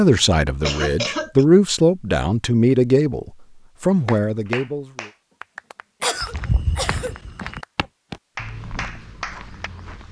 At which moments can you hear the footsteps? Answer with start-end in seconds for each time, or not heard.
6.2-10.0.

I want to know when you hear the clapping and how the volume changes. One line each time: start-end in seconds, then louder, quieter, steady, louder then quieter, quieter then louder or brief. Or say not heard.
4.0-9.7 quieter then louder.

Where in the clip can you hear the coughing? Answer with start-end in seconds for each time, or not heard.
0.1-1.4, 6.0-7.1.